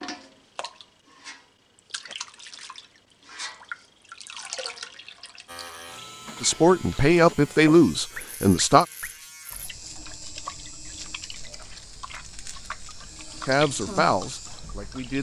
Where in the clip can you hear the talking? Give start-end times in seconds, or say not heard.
6.4-8.8, 13.4-15.1.